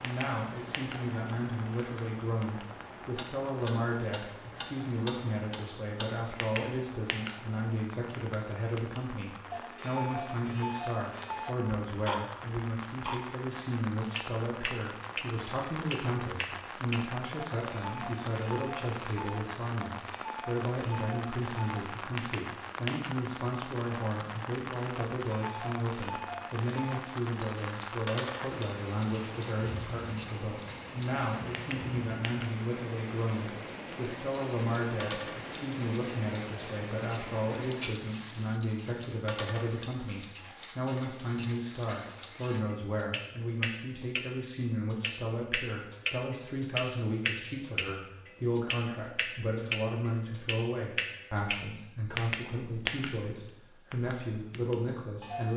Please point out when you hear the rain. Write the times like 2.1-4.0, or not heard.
0.0-38.6.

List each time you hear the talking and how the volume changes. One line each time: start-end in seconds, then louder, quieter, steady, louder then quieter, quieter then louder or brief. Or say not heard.
0.0-55.5 steady.